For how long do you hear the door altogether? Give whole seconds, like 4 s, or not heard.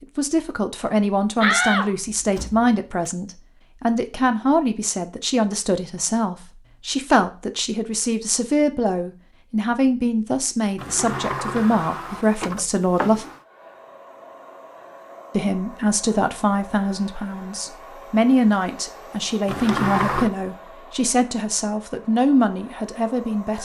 5 s.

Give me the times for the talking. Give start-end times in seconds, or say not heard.
0.0-13.2, 15.3-23.6.